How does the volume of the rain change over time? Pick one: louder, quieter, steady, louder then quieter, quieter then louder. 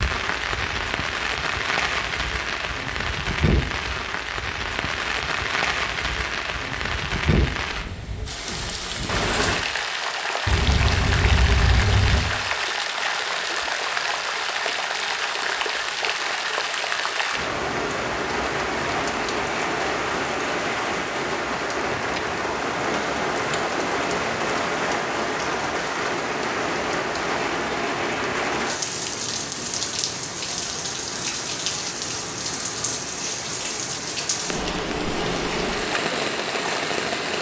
steady.